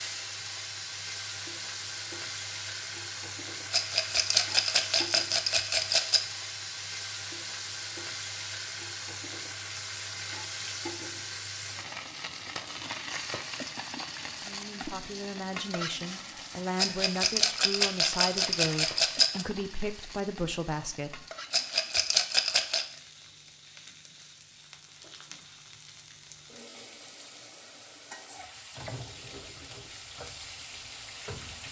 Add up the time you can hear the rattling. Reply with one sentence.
The rattling can be heard for 7 seconds in total.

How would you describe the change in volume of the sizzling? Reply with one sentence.
The loudness of the sizzling goes down.